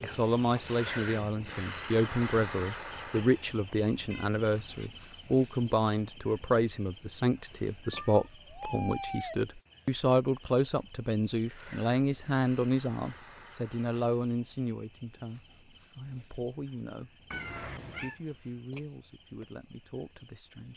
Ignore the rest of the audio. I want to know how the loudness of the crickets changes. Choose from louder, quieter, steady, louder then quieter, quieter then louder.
quieter.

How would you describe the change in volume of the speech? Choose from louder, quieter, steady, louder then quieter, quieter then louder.
quieter.